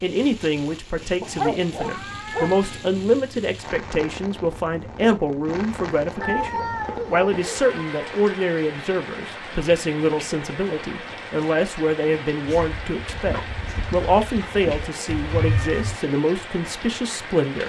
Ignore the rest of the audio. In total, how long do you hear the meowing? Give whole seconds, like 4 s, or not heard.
4 s.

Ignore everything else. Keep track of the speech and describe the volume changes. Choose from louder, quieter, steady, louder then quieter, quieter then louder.
steady.